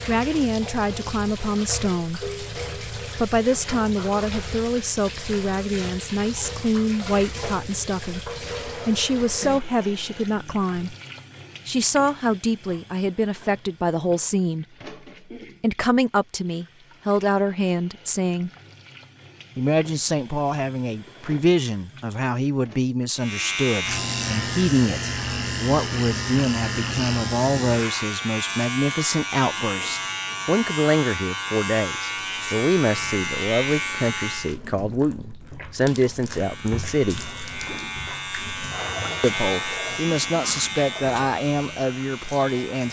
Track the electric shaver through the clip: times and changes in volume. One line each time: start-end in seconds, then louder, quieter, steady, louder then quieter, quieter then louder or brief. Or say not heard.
23.1-34.5 steady
36.2-42.8 louder then quieter.